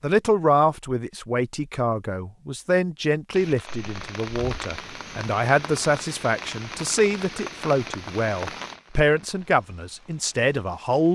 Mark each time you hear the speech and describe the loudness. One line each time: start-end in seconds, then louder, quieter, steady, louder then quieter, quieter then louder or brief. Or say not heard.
0.0-11.1 steady.